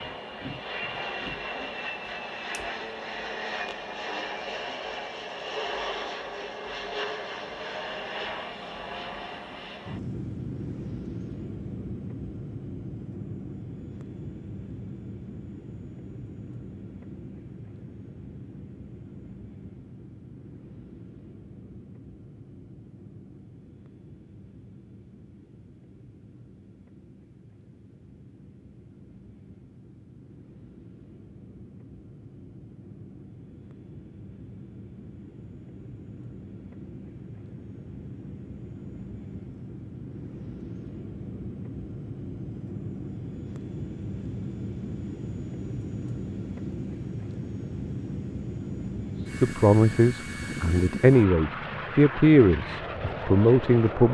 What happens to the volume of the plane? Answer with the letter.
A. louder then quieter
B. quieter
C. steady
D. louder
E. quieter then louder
E.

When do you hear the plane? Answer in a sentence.
You can hear the plane from 0.0 to 54.0 s.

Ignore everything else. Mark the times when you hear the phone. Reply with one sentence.
You can't hear the phone here.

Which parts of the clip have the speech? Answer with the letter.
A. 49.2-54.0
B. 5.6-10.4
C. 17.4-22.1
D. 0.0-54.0
A.